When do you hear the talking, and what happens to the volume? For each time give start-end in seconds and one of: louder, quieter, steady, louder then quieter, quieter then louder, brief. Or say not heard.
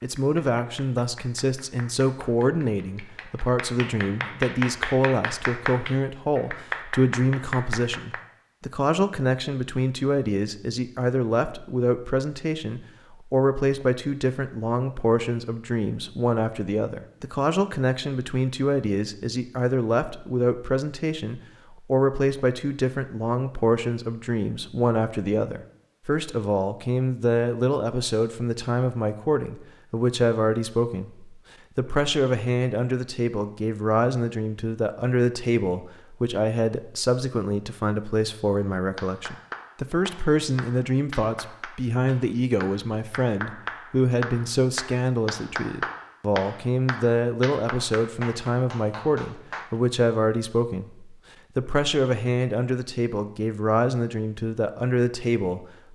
0.0-55.8 steady.